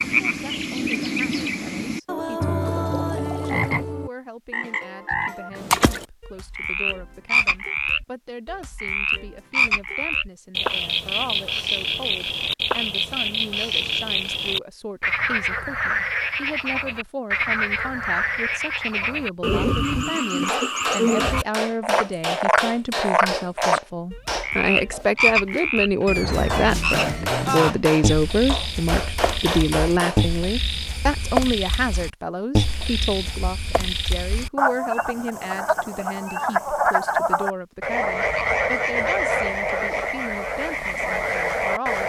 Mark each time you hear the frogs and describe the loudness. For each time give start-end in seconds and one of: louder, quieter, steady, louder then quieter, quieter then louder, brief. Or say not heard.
0.0-42.0 steady.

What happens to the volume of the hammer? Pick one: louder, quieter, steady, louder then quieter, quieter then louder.
quieter then louder.